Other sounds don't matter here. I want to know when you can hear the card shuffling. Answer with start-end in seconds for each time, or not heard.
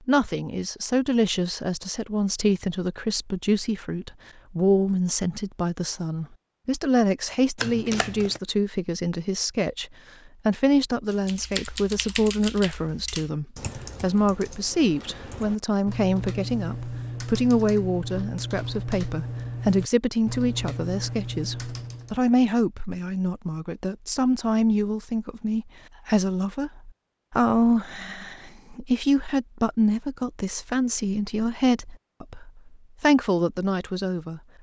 7.5-8.4.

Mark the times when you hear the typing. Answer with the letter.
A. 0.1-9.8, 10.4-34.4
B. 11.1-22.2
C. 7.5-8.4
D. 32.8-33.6
B.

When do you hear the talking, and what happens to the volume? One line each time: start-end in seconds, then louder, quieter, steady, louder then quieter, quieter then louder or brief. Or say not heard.
0.1-9.8 steady
10.4-34.4 steady.